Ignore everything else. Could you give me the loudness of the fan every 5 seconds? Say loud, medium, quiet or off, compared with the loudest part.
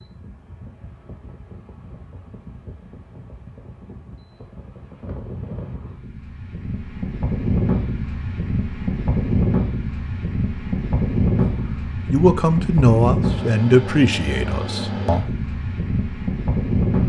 quiet, loud, loud, loud.